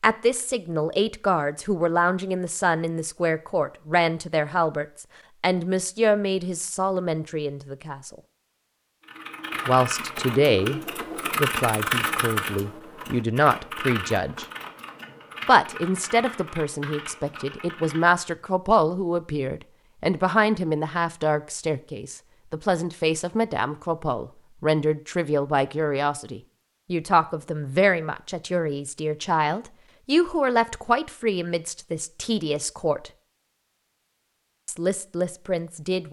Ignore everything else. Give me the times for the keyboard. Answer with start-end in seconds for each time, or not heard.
9.0-18.2.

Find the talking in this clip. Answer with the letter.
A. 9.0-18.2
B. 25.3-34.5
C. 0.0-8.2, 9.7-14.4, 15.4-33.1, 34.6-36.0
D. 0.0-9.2
C.